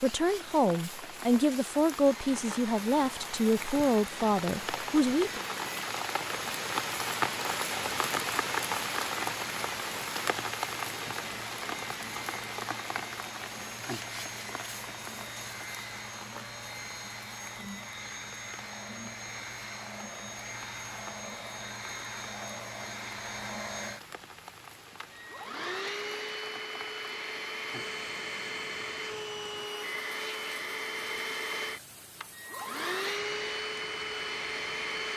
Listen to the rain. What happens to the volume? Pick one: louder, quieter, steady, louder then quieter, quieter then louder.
quieter.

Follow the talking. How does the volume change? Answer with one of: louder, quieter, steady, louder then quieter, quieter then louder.
steady.